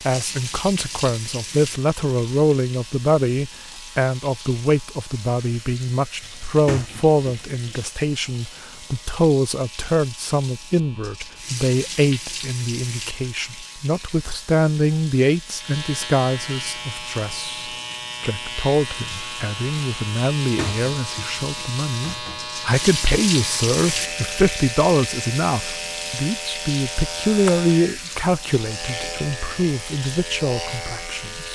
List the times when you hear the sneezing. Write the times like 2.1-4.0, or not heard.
not heard.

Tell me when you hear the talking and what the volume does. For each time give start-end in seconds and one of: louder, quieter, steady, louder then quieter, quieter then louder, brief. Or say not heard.
0.0-31.5 steady.